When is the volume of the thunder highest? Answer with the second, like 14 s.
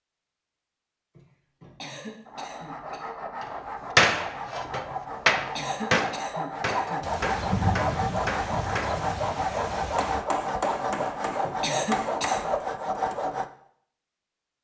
8 s.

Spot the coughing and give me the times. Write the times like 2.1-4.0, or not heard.
1.1-3.0, 4.9-7.0, 10.9-12.5.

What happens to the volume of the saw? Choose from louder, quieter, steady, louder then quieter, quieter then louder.
louder.